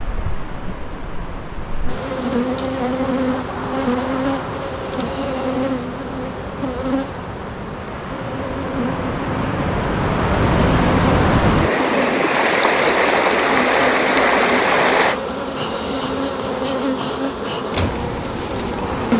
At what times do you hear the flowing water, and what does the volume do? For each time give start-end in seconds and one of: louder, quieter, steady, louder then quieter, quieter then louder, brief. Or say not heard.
0.0-15.2 louder.